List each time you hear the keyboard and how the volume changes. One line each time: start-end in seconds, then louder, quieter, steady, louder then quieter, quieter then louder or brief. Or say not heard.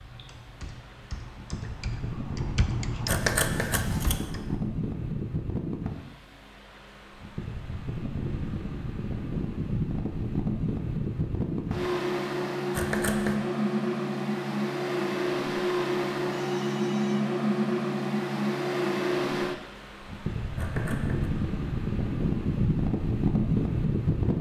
0.0-4.6 louder then quieter.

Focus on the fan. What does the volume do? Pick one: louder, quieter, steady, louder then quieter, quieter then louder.
louder.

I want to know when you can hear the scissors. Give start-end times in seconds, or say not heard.
3.0-4.3, 12.7-13.4, 20.6-21.3.